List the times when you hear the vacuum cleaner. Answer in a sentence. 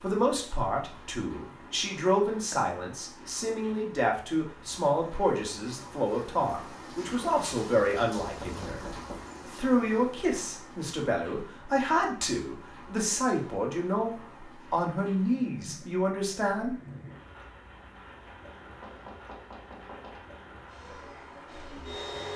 You can hear the vacuum cleaner from 20.6 to 22.3 s.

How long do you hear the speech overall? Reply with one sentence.
You can hear the speech for 16 seconds altogether.